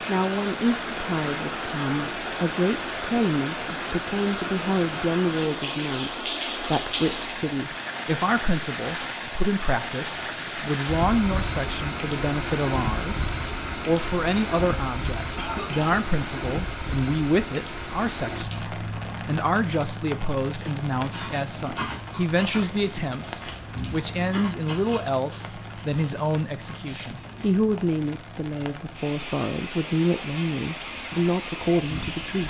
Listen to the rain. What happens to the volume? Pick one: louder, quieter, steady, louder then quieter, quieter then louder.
quieter.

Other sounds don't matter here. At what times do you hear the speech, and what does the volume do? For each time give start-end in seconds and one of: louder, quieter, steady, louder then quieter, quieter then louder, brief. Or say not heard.
0.1-32.4 steady.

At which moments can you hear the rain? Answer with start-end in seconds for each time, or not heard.
0.0-32.4.